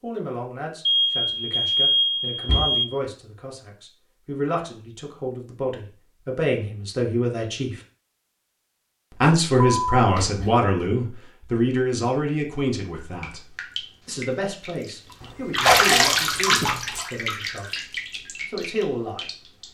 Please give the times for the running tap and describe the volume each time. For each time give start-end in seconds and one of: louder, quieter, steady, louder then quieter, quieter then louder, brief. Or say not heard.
12.9-19.6 louder then quieter.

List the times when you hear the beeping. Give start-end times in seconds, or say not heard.
0.8-2.9, 9.6-10.5, 15.2-17.1.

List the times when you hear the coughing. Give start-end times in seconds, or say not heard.
not heard.